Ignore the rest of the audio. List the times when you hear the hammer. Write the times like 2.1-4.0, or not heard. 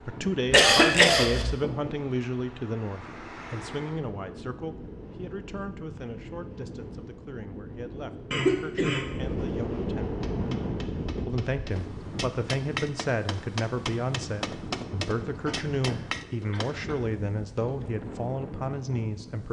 10.0-16.9.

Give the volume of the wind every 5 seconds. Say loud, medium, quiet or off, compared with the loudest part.
medium, loud, loud, medium.